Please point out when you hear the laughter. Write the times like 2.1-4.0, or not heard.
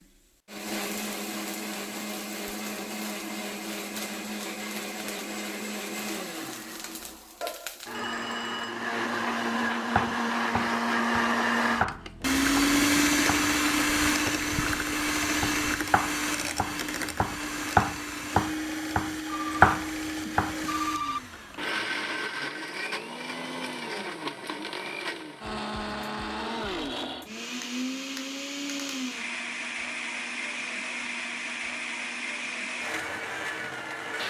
not heard.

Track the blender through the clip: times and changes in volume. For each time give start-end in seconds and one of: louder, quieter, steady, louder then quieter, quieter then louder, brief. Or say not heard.
0.0-34.2 louder then quieter.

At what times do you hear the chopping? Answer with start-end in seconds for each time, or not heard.
9.9-20.6.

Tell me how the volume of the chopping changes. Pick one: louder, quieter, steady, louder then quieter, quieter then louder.
quieter then louder.